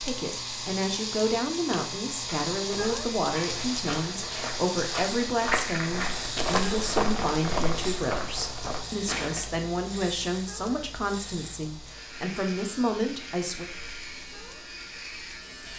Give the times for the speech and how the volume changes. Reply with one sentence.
You can hear the speech from 0.0 to 13.7 s, at a steady volume.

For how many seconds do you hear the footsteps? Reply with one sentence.
The footsteps can be heard for 7 seconds in total.